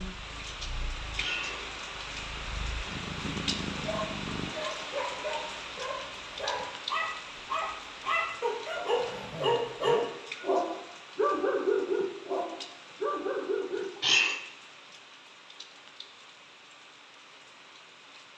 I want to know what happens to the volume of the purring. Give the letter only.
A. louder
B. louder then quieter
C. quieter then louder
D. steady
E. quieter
C.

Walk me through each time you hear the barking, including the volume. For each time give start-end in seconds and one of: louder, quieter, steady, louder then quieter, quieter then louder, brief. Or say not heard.
3.8-13.8 louder.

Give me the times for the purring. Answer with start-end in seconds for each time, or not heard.
0.0-4.5.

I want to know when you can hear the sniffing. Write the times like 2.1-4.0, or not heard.
1.1-1.8, 13.8-14.4.